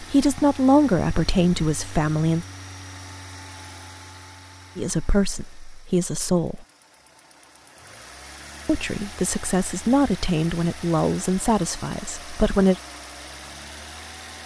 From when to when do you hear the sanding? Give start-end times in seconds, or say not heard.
not heard.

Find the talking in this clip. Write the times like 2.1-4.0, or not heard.
0.0-2.5, 4.8-6.7, 8.7-12.8.